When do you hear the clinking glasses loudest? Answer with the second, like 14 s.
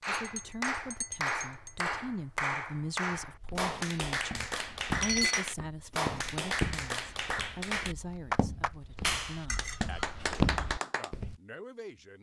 5 s.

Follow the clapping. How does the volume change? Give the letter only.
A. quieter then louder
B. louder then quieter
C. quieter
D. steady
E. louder
D.